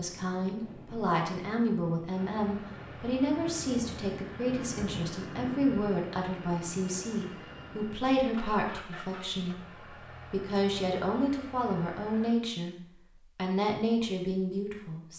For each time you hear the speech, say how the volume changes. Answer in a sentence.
You can hear the speech from 0.0 to 12.8 s, at a steady volume; and briefly from 13.3 to 15.1 s.